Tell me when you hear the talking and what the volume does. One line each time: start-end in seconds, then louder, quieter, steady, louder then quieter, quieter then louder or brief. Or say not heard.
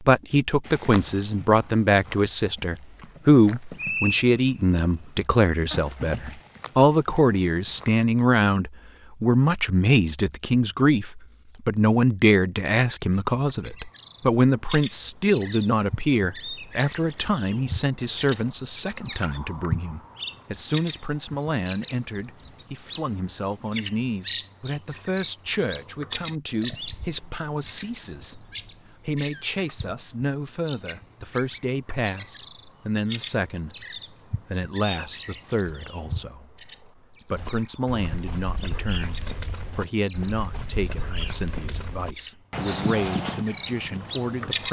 0.0-44.6 quieter.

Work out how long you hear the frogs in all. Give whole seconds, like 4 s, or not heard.
not heard.